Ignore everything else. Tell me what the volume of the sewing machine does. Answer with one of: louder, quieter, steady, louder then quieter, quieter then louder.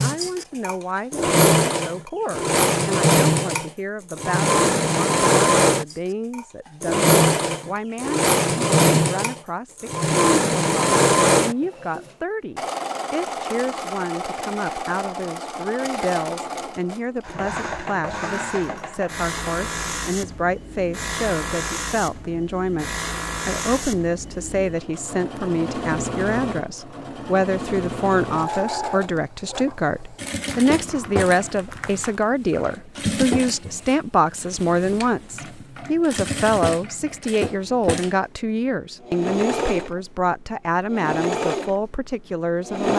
quieter.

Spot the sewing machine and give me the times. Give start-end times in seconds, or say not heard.
0.0-42.9.